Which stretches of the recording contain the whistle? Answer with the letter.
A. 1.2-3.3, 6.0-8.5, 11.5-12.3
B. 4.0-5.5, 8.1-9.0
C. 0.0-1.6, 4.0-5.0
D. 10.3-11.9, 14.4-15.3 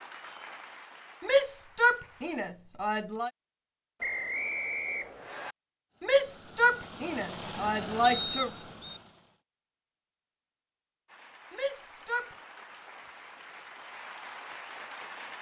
B.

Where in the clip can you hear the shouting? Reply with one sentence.
You can hear the shouting from 1.2 to 3.3 s, from 6.0 to 8.5 s and from 11.5 to 12.3 s.